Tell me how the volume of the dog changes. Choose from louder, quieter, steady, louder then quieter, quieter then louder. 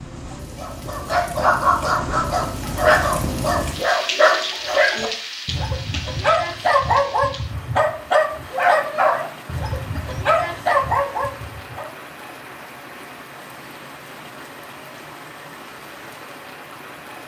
steady.